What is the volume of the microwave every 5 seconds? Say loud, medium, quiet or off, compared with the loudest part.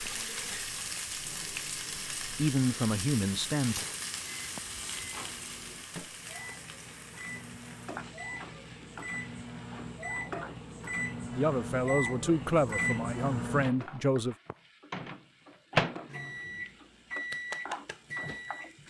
quiet, medium, loud, loud.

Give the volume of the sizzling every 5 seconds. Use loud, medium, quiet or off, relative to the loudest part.
loud, medium, medium, medium.